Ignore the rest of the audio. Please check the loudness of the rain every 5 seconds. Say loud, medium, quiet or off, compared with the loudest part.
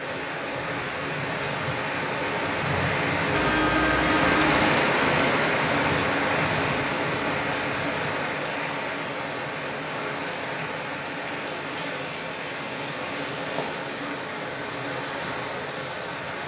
loud, loud, medium, medium.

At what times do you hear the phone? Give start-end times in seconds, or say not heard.
3.3-4.6.